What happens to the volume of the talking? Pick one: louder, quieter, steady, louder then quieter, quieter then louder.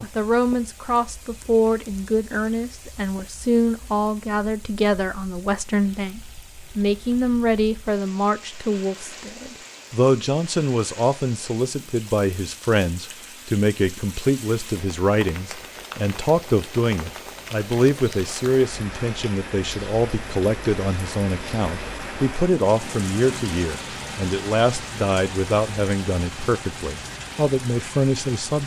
steady.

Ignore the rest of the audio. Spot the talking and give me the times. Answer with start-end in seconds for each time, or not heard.
0.0-28.6.